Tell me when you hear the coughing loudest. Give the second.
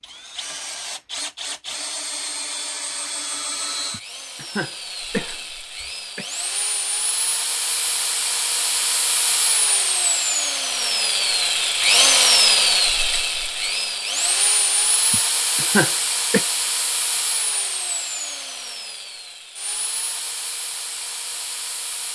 16 s.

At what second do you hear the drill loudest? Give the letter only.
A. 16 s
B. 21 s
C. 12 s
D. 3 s
C.